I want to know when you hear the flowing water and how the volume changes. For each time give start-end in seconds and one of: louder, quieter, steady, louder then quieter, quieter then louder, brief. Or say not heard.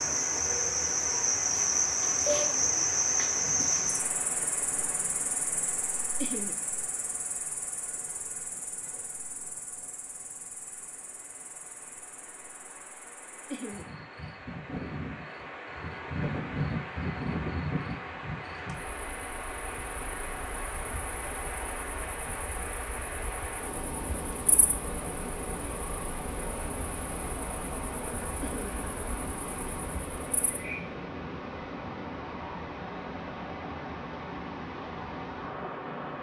0.0-36.1 quieter then louder.